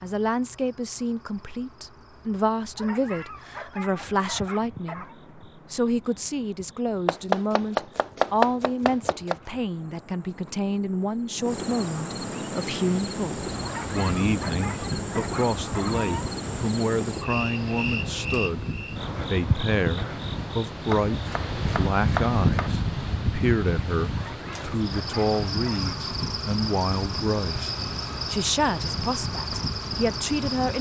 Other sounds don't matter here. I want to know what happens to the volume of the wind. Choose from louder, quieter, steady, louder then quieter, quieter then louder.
louder then quieter.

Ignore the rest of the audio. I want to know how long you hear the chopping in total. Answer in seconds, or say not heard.
4 s.